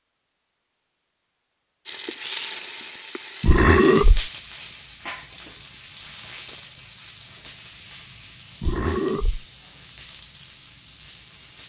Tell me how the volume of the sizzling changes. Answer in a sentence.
The loudness of the sizzling goes down.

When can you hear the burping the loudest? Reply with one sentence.
The loudest moment of the burping is at 4 seconds.